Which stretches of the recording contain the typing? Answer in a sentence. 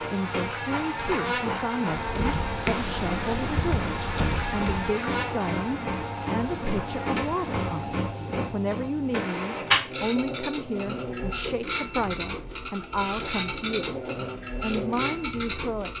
The typing can be heard from 1.9 to 4.9 s.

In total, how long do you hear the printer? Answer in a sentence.
You can hear the printer for 16 seconds altogether.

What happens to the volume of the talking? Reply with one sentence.
The volume of the talking stays about the same.